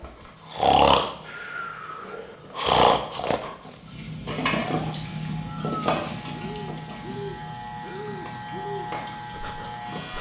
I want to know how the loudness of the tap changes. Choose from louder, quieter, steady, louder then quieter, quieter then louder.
louder then quieter.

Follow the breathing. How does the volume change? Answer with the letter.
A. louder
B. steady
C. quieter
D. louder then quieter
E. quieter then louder
C.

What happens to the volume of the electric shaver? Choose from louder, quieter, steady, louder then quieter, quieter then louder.
louder.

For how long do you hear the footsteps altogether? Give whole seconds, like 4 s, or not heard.
not heard.